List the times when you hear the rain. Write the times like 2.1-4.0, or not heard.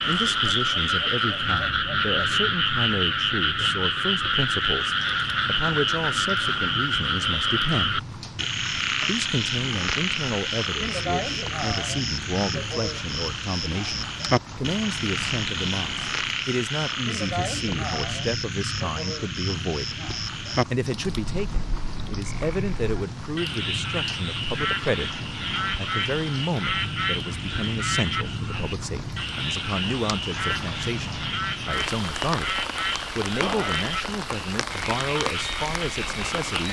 0.0-36.6.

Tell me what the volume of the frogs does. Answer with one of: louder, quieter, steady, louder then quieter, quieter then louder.
quieter.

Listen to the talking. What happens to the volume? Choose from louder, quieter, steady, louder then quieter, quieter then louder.
steady.